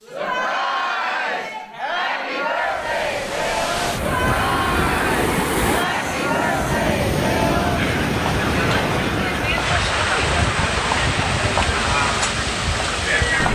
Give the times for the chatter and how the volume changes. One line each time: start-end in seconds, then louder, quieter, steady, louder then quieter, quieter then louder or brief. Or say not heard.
0.1-13.4 steady.